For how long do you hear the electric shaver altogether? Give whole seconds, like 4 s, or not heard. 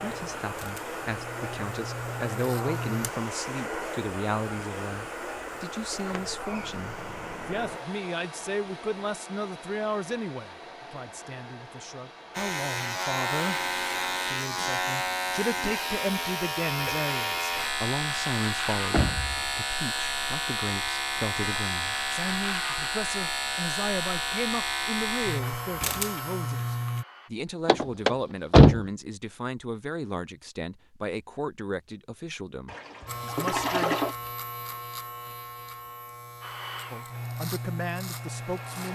24 s.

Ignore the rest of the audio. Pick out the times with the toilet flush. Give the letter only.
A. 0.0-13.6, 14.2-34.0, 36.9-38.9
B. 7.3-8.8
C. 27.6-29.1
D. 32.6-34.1
D.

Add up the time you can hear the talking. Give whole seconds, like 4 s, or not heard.
35 s.